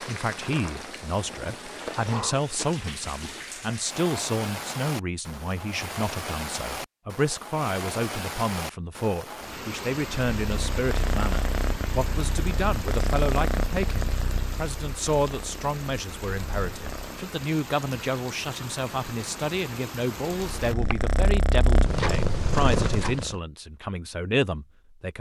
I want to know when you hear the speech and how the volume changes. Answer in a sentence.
The speech can be heard from 0.1 to 25.1 s, at a steady volume.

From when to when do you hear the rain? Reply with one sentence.
You can hear the rain from 0.0 to 20.8 s.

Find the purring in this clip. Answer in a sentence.
The purring can be heard from 10.2 to 17.2 s and from 20.4 to 23.4 s.